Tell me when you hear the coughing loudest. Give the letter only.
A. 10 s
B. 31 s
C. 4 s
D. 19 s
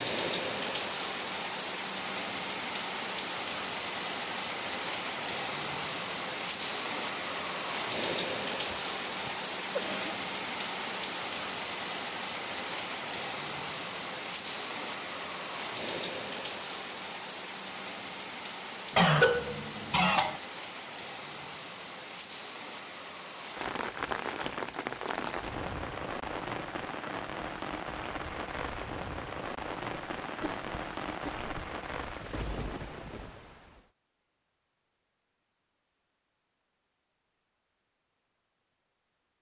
D.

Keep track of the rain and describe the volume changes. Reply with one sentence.
The volume of the rain goes down.